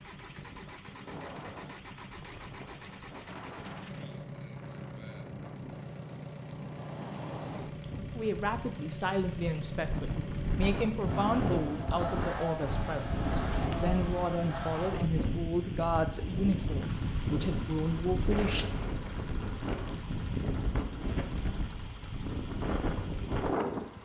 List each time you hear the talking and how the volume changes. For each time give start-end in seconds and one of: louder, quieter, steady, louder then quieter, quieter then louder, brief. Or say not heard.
8.2-18.7 steady.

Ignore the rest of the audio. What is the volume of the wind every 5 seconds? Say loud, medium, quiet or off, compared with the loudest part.
quiet, medium, loud, loud, loud.